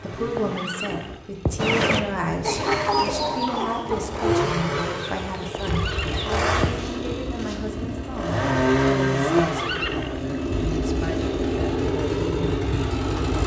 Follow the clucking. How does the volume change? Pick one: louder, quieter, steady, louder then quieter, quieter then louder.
quieter.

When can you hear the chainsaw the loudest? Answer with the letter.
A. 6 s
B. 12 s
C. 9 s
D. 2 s
C.